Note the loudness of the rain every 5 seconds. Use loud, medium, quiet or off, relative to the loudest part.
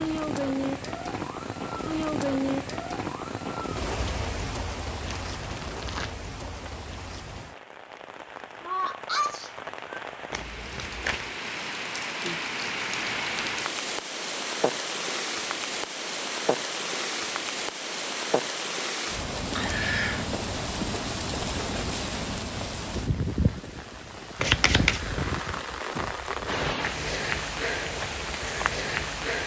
loud, medium, loud, loud, loud, loud.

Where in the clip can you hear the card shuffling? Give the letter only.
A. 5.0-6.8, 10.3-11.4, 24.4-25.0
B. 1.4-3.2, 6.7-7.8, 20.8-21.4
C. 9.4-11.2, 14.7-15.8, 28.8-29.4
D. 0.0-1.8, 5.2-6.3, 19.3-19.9
A.